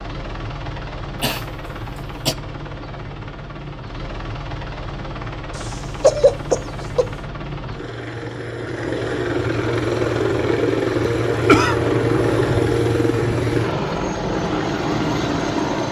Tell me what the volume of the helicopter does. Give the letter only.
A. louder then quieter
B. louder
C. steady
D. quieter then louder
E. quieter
B.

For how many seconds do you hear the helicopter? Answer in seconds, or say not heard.
16 s.